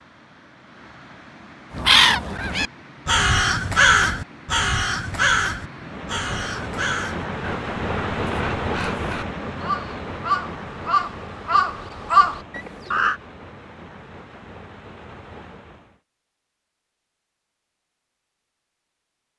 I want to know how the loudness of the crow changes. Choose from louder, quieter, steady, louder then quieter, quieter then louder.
quieter then louder.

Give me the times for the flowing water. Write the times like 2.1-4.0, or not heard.
0.0-16.0.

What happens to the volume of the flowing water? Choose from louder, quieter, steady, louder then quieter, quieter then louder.
louder then quieter.